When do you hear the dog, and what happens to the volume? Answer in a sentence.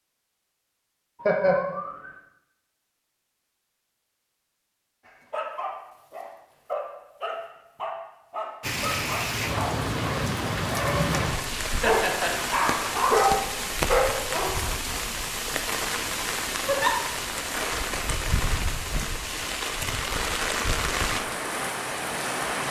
You can hear the dog from 5.0 to 14.6 s, getting louder.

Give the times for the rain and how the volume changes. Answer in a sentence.
You can hear the rain from 8.6 to 22.6 s, at a steady volume.